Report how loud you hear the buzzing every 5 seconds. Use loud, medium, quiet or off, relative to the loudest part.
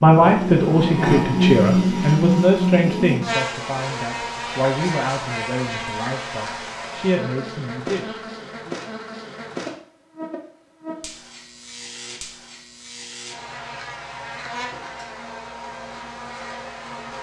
loud, medium, quiet, quiet.